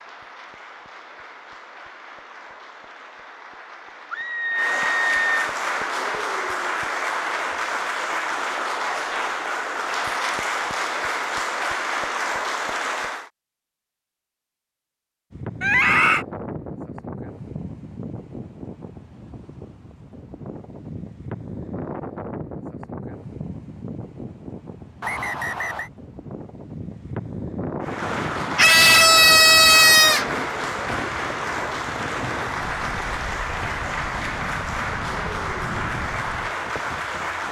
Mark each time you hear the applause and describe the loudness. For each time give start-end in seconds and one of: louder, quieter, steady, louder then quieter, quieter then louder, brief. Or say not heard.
0.0-13.3 louder
27.8-37.4 steady.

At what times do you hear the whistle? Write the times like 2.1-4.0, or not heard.
25.0-25.9.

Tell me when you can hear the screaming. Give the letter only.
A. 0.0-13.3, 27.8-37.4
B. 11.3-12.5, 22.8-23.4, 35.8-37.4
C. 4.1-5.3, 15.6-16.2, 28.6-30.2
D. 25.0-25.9
C.